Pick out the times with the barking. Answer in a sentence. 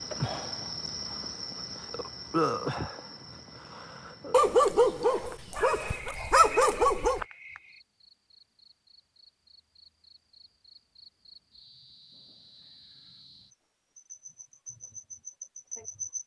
You can hear the barking from 4.3 to 7.2 s.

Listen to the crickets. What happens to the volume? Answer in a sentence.
The loudness of the crickets goes down, then up.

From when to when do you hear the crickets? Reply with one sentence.
You can hear the crickets from 0.0 to 16.2 s.